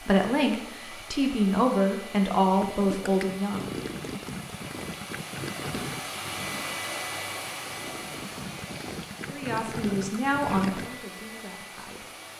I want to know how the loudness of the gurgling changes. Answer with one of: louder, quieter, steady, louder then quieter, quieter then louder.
quieter then louder.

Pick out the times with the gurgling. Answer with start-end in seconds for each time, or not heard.
2.5-11.0.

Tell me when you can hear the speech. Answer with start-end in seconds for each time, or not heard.
0.0-3.7, 9.2-12.1.